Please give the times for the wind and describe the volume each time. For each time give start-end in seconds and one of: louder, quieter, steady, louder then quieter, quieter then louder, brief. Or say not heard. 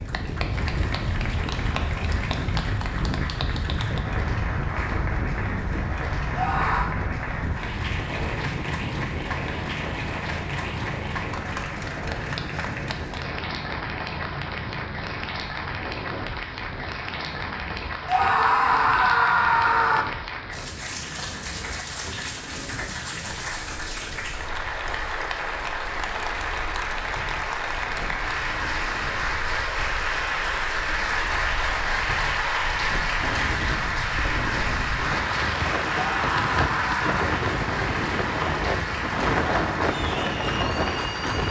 0.0-41.4 quieter then louder.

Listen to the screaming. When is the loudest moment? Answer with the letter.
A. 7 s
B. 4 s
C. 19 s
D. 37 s
C.